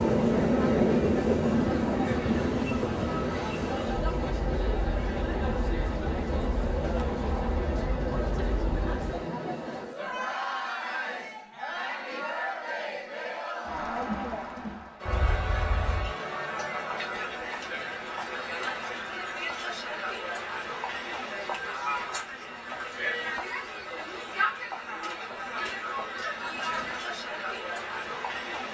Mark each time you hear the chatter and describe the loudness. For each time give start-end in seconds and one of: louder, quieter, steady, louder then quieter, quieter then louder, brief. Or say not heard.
0.0-28.7 steady.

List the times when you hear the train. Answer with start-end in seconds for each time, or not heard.
0.0-9.2.